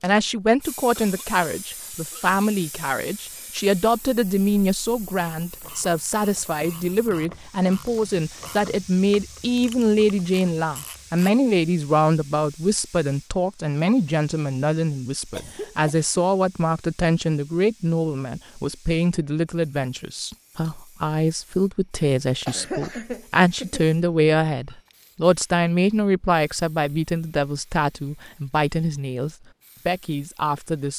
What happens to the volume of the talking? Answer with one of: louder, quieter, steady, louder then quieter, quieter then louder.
steady.